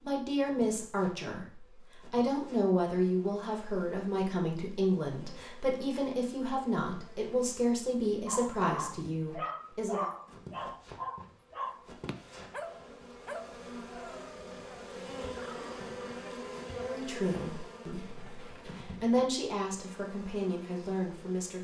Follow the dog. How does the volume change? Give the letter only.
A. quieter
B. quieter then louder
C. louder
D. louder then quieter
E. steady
A.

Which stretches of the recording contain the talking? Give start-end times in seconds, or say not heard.
0.0-10.1, 16.7-21.6.